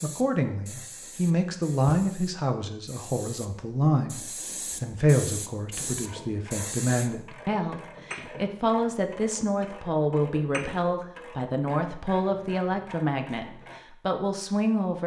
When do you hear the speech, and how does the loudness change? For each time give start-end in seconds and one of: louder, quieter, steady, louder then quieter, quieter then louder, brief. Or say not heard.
0.0-15.0 steady.